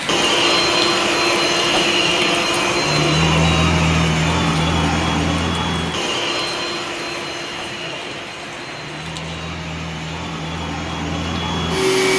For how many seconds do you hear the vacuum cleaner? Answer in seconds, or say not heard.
12 s.